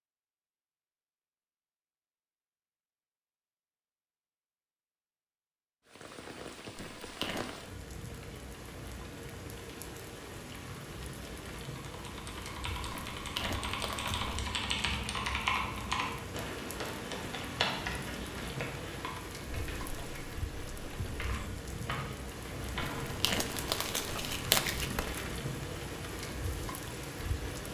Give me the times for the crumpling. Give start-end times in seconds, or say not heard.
6.8-7.5, 12.9-14.4, 22.8-25.2.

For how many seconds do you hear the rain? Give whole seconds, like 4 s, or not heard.
22 s.